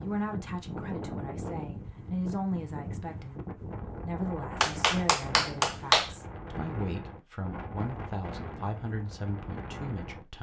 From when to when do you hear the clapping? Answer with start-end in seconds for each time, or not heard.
4.6-6.1.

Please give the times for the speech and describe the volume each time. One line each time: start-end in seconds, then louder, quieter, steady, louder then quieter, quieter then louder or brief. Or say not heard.
0.0-10.3 steady.